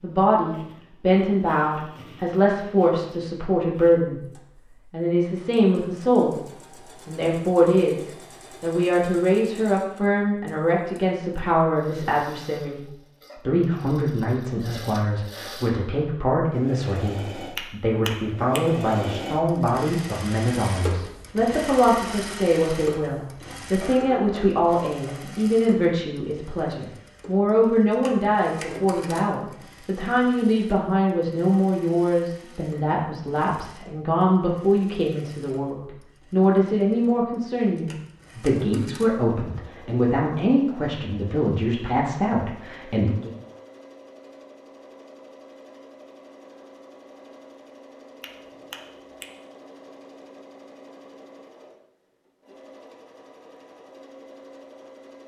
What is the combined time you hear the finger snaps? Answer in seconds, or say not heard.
2 s.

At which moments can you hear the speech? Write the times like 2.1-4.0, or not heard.
0.0-4.3, 4.9-43.3.